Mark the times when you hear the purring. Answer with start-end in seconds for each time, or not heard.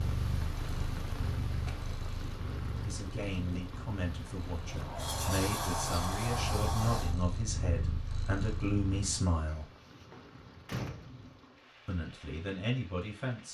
0.0-9.2.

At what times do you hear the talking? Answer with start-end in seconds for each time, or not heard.
2.8-9.7, 11.8-13.4.